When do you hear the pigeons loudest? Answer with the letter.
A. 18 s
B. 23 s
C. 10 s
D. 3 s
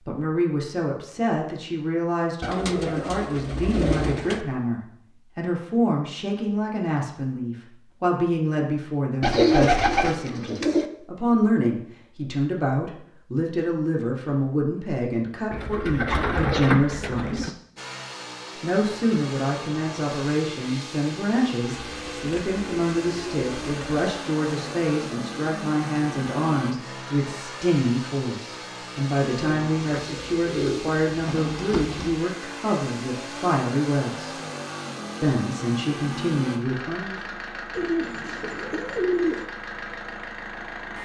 C.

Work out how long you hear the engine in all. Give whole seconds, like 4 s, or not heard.
23 s.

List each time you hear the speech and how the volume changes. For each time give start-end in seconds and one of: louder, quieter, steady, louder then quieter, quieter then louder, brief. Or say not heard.
0.1-17.6 steady
18.6-34.4 steady
35.2-37.2 brief.